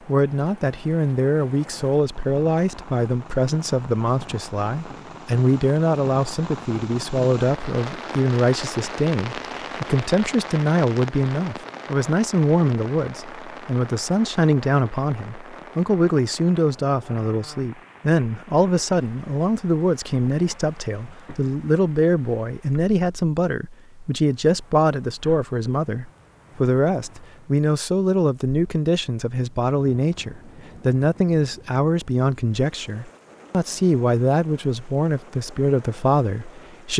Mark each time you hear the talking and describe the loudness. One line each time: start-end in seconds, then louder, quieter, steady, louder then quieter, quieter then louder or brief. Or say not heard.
0.1-36.9 steady.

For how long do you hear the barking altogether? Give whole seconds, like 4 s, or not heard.
not heard.